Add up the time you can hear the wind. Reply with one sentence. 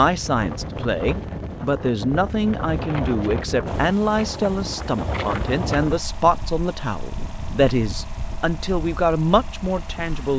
The wind can be heard for 10 seconds in total.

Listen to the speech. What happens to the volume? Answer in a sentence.
The loudness of the speech stays about the same.